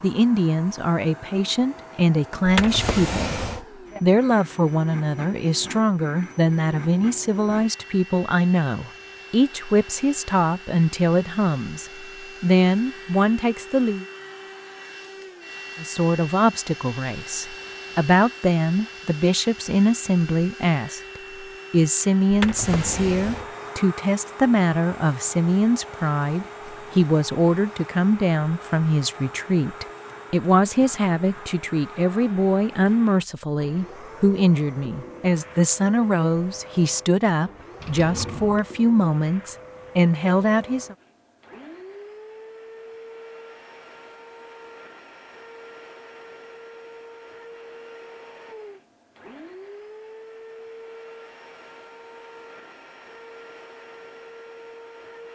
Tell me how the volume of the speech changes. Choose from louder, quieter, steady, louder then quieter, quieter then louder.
steady.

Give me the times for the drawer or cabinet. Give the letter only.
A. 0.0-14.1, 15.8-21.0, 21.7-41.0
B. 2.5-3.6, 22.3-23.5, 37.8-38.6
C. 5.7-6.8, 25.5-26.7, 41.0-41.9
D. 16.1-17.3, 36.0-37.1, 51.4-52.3
B.